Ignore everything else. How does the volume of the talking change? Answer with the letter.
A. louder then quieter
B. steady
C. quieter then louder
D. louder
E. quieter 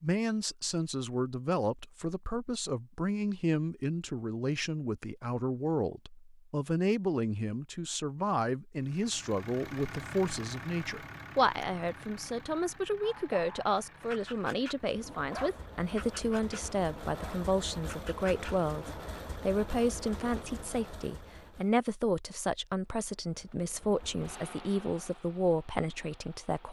B.